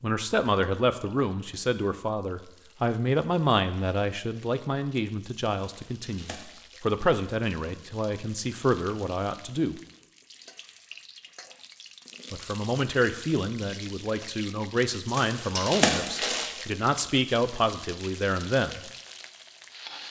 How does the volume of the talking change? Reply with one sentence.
The volume of the talking stays about the same.